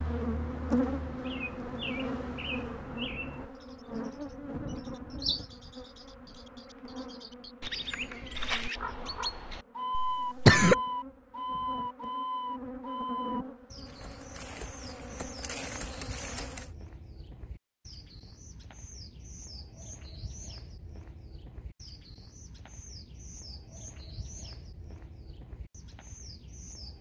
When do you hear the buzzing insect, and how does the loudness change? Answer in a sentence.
The buzzing insect can be heard from 0.0 to 16.7 s, getting quieter then louder.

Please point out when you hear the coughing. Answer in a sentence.
The coughing can be heard from 9.9 to 10.8 s.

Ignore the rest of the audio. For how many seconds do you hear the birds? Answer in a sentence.
The birds can be heard for 27 seconds in total.